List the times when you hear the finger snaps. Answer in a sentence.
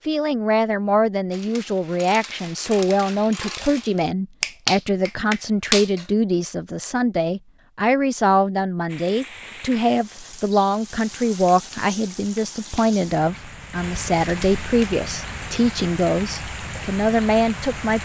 You can hear the finger snaps from 4.4 to 6.0 s and from 11.5 to 12.9 s.